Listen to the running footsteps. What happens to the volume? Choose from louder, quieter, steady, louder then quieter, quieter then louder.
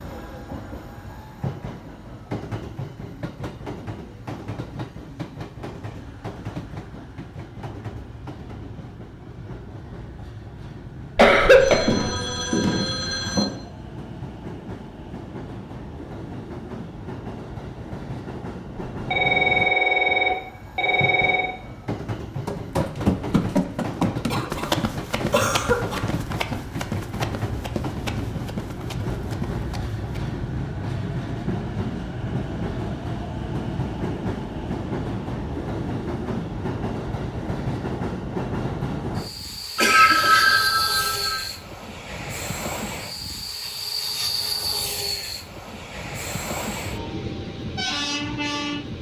quieter.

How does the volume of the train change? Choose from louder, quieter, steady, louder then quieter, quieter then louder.
louder.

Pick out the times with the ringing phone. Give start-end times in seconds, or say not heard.
11.6-13.4, 18.9-21.5, 39.8-41.5.